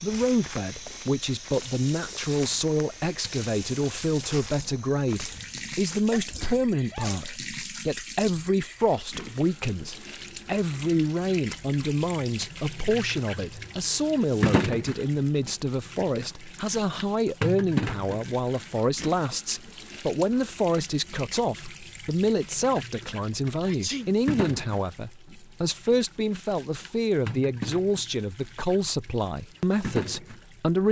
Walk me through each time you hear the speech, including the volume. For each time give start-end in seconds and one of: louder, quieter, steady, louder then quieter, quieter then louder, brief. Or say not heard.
0.0-30.8 steady.